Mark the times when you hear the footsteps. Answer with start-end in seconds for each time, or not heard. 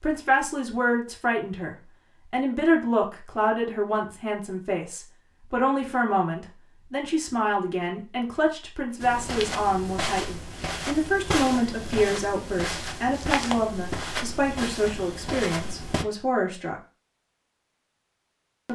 9.0-16.1.